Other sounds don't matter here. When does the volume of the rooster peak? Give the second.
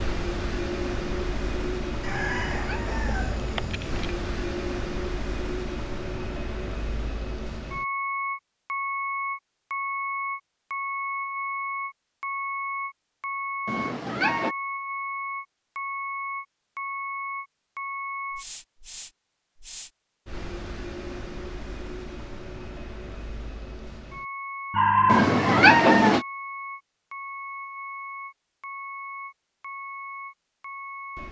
25 s.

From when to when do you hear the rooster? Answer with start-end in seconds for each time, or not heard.
2.0-4.0, 24.7-25.8.